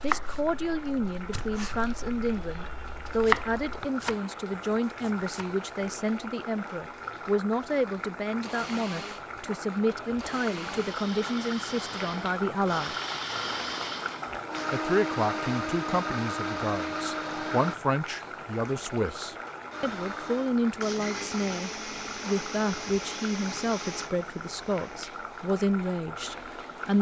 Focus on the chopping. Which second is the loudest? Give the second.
3 s.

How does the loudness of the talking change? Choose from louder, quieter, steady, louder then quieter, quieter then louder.
steady.